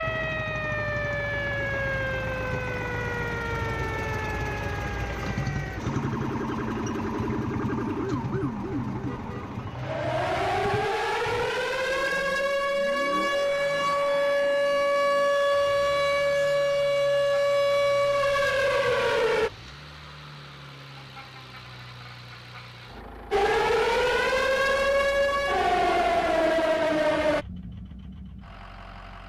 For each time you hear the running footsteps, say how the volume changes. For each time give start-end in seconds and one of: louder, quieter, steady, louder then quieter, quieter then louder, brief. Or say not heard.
not heard.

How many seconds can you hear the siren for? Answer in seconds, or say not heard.
24 s.